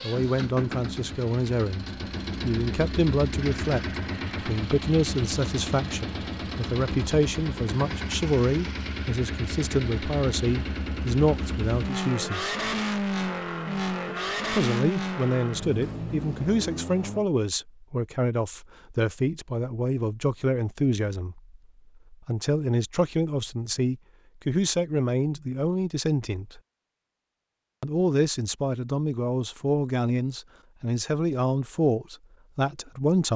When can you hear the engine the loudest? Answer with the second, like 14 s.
13 s.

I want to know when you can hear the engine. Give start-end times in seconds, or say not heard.
0.0-17.2.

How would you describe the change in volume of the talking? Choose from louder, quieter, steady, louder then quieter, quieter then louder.
steady.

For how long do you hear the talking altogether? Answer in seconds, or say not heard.
30 s.